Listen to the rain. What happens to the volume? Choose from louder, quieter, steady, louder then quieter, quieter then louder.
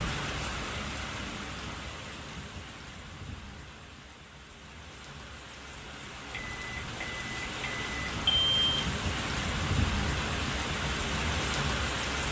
quieter then louder.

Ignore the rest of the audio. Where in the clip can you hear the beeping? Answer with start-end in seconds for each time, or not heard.
6.3-8.8.